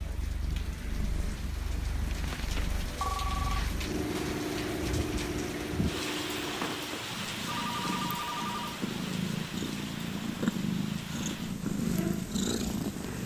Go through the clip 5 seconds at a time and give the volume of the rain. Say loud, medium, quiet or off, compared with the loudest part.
loud, loud, medium.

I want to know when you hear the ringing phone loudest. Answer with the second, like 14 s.
3 s.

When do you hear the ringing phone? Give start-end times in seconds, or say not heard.
2.1-3.6, 7.5-8.8.